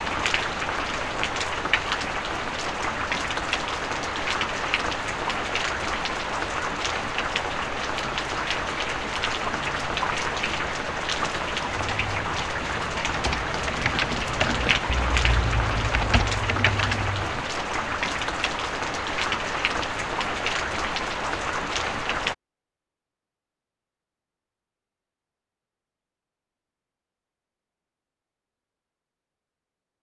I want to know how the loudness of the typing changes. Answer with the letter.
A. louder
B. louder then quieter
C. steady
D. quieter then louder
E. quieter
A.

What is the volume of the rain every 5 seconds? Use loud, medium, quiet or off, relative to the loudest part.
loud, loud, loud, loud, loud, off.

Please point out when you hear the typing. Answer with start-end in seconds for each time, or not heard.
11.7-17.4.